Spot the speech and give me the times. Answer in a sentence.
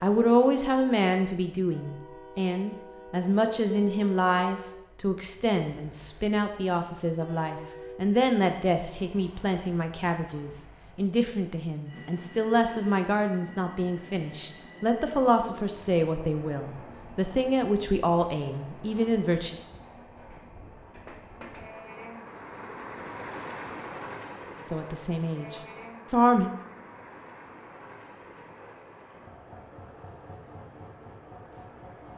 The speech can be heard from 0.0 to 19.6 s and from 24.6 to 26.5 s.